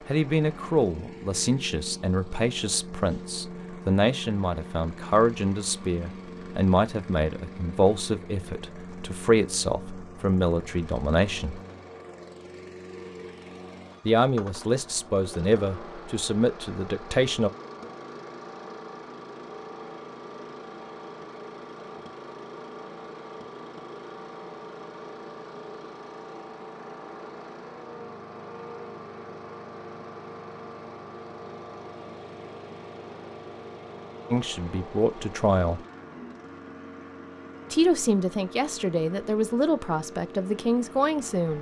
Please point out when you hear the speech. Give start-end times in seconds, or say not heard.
0.1-11.6, 14.1-17.5, 34.3-35.8, 37.7-41.5.